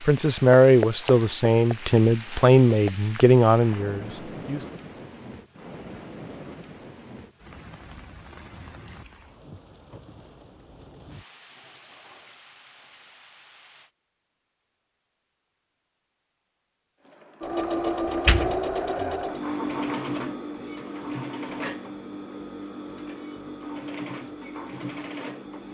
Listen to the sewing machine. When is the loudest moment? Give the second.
18 s.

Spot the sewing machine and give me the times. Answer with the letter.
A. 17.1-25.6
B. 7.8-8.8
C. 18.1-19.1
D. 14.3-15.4
A.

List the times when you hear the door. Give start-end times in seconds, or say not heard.
18.1-19.1.